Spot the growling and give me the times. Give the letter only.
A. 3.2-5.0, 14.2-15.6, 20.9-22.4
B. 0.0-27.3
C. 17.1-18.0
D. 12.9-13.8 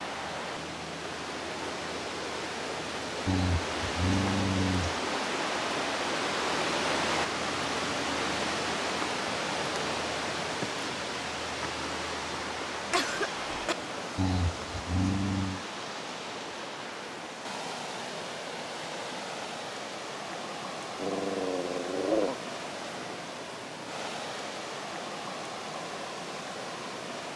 A.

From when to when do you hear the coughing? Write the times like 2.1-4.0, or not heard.
12.9-13.8.